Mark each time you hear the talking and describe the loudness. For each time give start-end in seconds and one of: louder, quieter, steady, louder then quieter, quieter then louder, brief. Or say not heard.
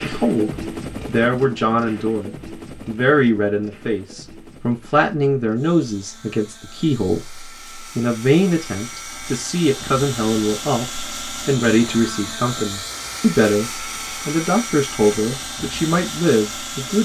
0.0-16.9 steady.